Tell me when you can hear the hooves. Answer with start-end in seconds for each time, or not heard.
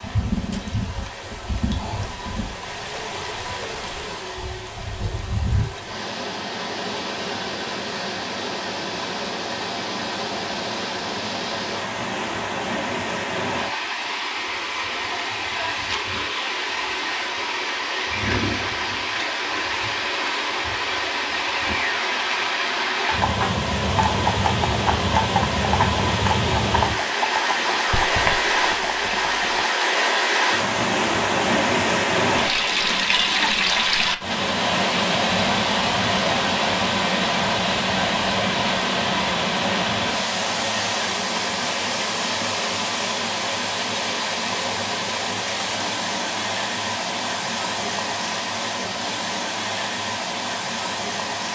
23.1-29.6.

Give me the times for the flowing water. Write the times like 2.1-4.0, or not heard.
0.0-51.5.